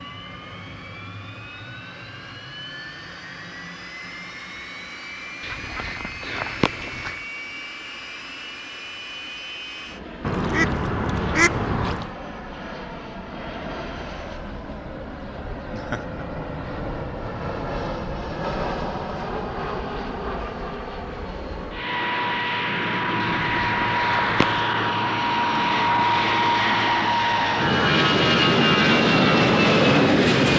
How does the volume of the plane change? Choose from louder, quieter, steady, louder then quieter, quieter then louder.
louder.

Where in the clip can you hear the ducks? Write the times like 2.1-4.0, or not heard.
5.4-7.2, 10.2-12.1, 23.2-24.6.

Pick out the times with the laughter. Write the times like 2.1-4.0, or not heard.
15.7-16.2.